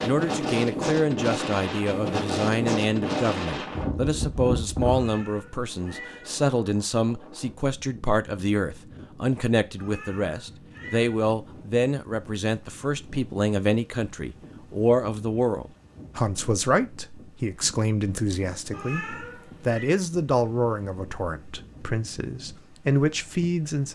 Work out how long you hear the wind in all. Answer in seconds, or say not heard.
24 s.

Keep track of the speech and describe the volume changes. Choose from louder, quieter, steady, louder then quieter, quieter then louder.
steady.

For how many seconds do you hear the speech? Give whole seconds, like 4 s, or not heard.
24 s.